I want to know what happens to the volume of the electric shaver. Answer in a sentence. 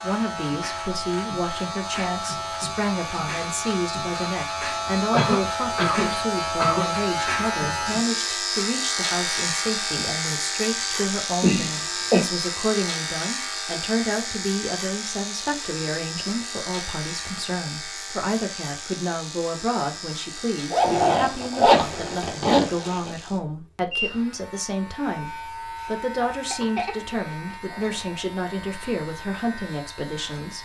The loudness of the electric shaver goes down.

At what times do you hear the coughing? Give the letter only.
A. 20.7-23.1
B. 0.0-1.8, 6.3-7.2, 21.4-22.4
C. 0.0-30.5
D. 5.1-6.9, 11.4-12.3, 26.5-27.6
D.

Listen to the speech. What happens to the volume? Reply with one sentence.
The loudness of the speech stays about the same.